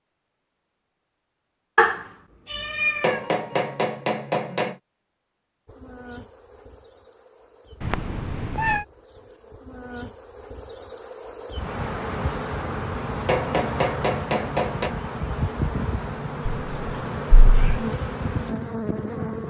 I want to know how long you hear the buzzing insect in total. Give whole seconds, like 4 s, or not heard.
14 s.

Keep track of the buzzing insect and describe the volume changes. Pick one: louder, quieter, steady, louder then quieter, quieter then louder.
louder.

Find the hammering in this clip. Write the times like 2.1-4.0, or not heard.
3.0-4.8, 13.2-14.9.